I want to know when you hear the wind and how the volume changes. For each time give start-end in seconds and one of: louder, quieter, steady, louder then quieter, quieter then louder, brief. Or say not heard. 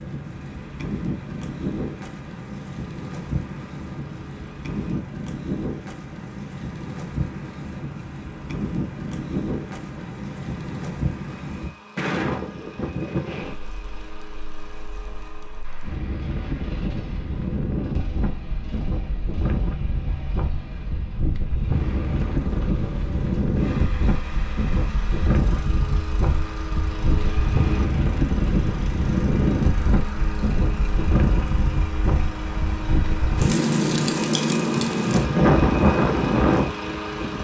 0.0-37.3 louder.